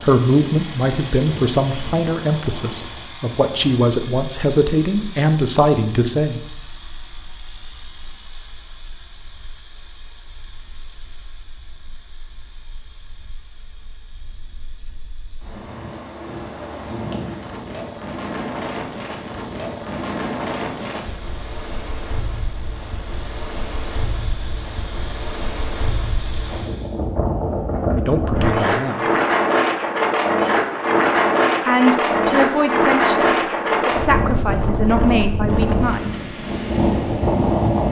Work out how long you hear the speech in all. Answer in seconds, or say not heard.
12 s.